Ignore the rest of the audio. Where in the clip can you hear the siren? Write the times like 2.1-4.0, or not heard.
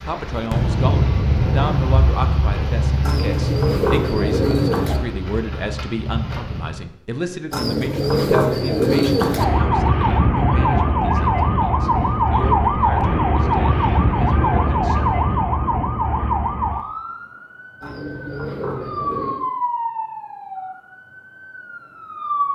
9.3-22.5.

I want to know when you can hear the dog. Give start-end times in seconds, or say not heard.
not heard.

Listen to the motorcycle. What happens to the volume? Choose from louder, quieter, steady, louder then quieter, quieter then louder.
quieter.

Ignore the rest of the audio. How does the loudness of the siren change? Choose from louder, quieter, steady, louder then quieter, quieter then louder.
quieter.